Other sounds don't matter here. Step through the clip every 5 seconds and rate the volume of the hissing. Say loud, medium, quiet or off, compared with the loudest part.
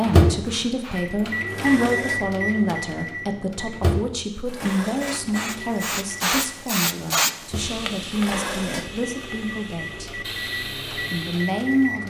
quiet, loud, medium.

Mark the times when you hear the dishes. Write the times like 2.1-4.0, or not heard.
1.4-2.3, 4.5-5.3, 8.1-9.0.